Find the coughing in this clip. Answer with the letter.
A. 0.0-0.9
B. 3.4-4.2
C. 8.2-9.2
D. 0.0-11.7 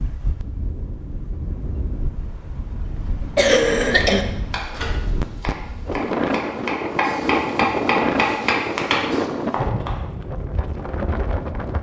B.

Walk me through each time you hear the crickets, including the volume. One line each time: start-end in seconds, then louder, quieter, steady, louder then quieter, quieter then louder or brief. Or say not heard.
not heard.